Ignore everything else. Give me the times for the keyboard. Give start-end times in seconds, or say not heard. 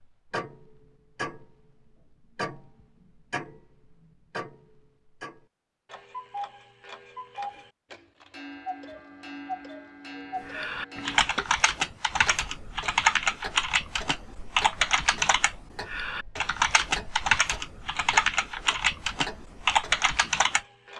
10.4-20.6.